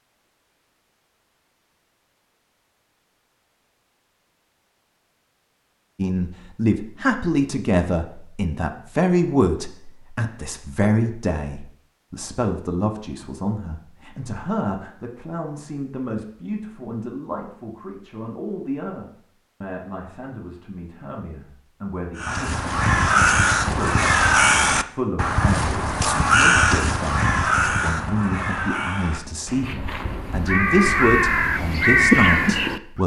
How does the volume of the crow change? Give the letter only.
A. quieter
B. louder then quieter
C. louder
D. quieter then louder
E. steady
D.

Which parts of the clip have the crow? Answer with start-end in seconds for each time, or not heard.
22.1-33.0.